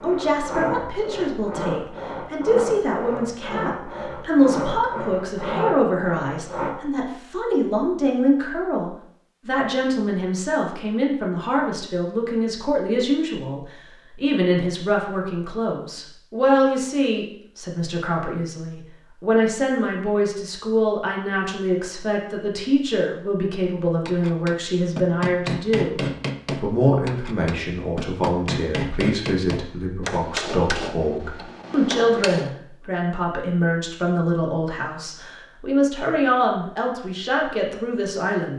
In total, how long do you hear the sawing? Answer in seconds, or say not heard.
7 s.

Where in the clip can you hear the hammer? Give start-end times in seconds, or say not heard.
24.1-32.6.